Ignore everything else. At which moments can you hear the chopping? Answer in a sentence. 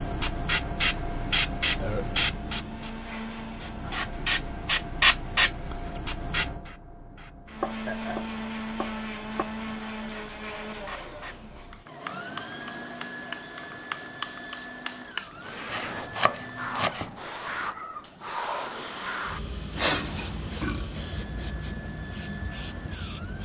You can hear the chopping from 7.6 to 9.4 s and from 15.7 to 17.1 s.